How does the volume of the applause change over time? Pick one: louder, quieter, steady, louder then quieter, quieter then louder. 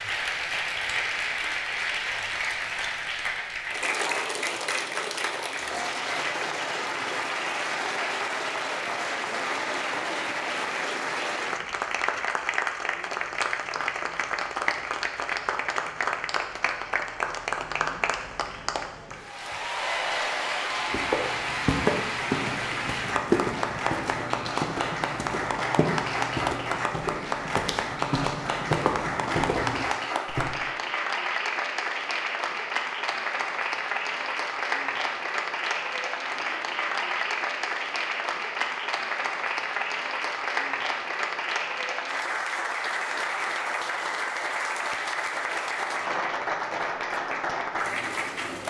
steady.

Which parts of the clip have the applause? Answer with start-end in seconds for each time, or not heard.
0.0-48.6.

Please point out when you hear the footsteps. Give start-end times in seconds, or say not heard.
20.9-30.5.